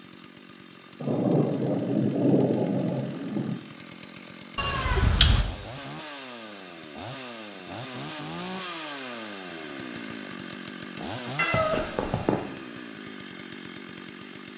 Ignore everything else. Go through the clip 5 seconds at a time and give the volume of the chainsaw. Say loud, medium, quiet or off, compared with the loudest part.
medium, loud, loud.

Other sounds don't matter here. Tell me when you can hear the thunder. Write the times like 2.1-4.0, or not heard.
1.0-3.6.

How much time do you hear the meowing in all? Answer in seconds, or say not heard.
2 s.